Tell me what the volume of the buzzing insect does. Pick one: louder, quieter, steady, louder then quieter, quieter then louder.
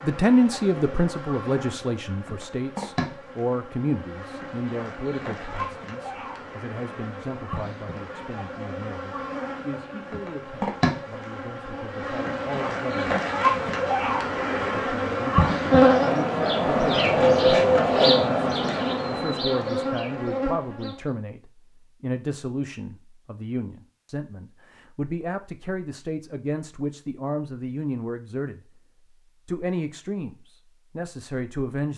louder.